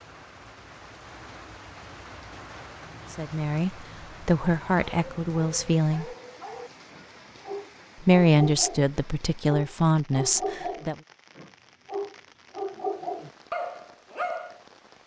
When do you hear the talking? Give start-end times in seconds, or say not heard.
3.1-6.1, 8.0-10.9.